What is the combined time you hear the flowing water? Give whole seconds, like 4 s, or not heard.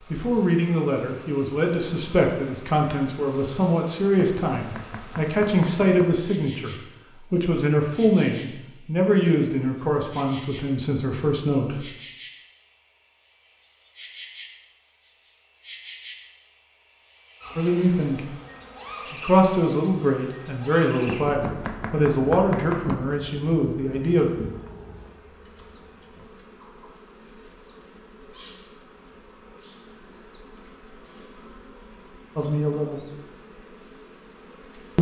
not heard.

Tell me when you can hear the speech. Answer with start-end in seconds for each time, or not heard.
0.1-11.8, 17.6-18.2, 19.1-24.3, 32.4-33.0.